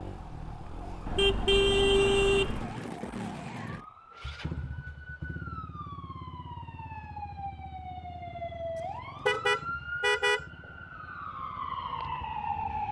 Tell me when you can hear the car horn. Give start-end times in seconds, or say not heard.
1.1-2.8, 9.2-10.4.